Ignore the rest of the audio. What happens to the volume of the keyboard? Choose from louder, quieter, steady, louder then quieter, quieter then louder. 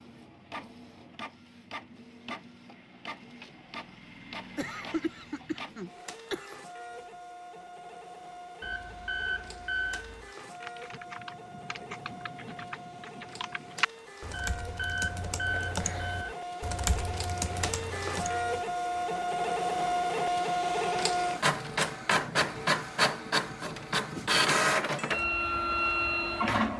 louder.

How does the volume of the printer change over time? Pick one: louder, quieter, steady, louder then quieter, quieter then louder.
louder.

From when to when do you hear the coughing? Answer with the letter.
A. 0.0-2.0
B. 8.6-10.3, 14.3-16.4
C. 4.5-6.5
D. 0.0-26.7
C.